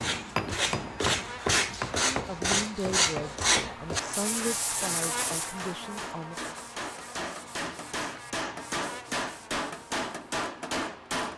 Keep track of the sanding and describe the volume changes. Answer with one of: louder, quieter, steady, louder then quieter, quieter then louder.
quieter.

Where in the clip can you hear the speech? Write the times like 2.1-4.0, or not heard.
2.1-6.5.